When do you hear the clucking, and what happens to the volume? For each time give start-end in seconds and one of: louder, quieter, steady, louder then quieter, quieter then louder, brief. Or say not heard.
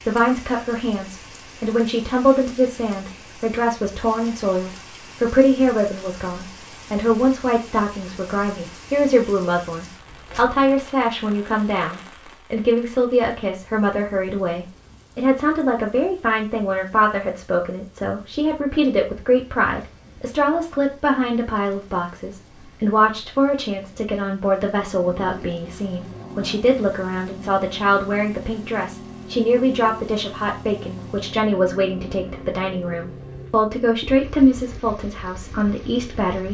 not heard.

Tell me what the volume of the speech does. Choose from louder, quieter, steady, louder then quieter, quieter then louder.
steady.